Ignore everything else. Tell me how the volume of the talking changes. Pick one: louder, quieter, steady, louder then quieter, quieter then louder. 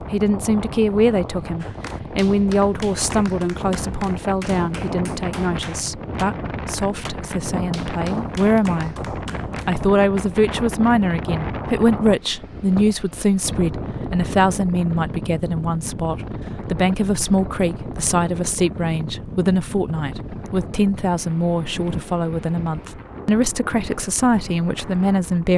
steady.